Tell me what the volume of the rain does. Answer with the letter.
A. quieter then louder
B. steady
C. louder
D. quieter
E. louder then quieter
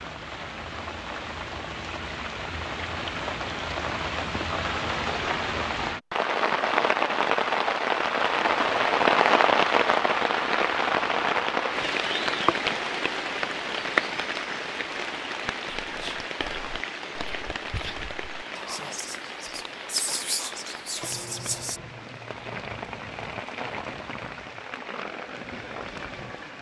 E.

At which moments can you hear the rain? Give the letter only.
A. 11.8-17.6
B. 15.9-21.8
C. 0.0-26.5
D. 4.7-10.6
C.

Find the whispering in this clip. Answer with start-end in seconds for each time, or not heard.
15.9-21.8.